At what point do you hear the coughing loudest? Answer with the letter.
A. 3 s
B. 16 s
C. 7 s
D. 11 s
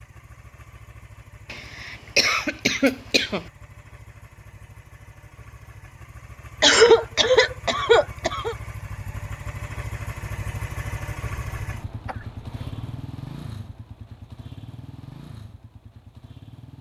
C.